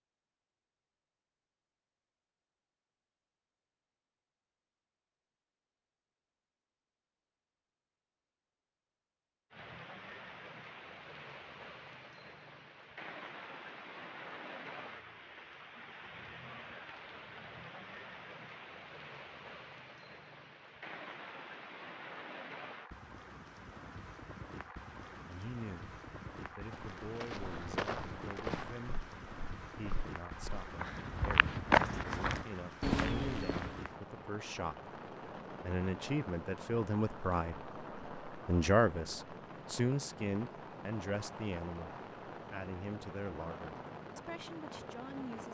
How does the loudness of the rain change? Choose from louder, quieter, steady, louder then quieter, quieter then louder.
steady.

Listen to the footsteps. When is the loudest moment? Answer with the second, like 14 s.
32 s.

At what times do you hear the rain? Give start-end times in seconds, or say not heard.
9.5-45.5.